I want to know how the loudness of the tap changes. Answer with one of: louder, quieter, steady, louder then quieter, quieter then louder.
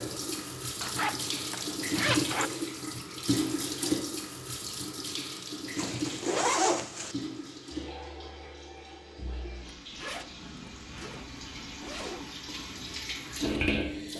quieter then louder.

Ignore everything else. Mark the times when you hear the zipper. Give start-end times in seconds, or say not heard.
0.8-2.5, 5.8-7.2, 9.7-12.3.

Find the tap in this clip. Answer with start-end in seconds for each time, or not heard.
0.0-14.1.